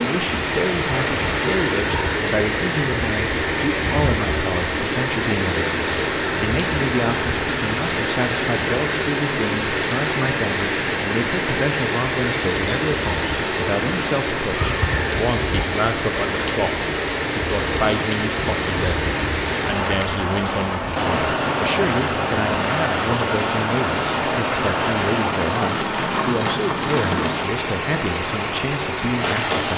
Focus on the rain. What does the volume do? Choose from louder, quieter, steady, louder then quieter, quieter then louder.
steady.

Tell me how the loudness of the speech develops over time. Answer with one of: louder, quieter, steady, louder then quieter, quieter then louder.
steady.